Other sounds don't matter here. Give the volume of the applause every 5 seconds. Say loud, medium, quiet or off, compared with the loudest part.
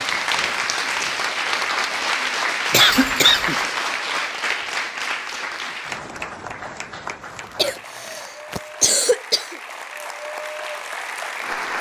loud, medium, medium.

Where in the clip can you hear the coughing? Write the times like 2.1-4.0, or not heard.
2.7-3.6, 7.5-9.6.